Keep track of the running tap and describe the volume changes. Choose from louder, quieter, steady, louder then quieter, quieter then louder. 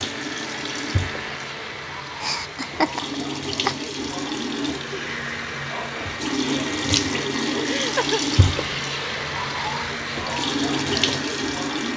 louder.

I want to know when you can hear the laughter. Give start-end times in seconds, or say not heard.
2.2-3.8, 7.7-8.2.